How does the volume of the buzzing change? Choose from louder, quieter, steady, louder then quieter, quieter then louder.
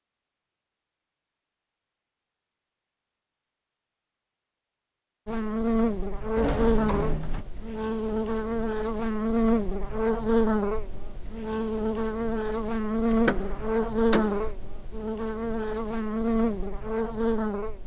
steady.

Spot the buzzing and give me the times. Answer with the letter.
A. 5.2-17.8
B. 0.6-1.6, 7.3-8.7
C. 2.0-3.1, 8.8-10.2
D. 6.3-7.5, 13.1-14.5
A.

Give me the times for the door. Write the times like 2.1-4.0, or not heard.
6.3-7.5, 13.1-14.5.